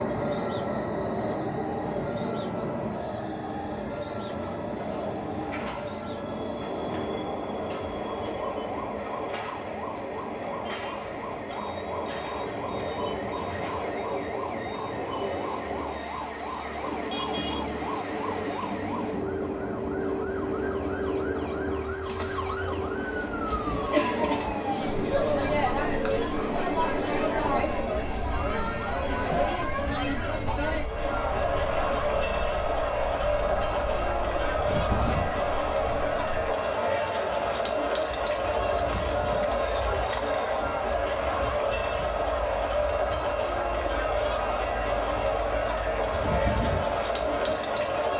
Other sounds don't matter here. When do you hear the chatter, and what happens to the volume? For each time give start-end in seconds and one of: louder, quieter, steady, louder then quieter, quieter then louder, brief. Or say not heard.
23.4-48.1 steady.